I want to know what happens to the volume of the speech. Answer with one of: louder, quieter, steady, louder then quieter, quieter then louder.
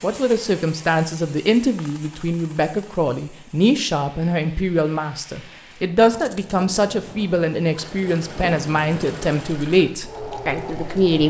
steady.